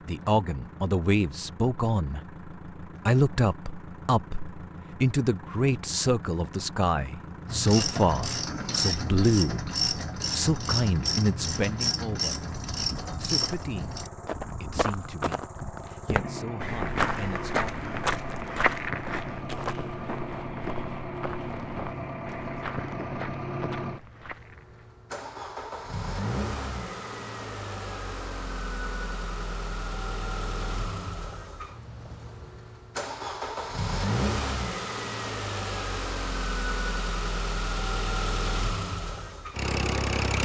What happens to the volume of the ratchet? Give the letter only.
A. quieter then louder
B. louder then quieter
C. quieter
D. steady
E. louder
D.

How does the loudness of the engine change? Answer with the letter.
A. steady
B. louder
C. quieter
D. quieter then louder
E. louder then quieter
B.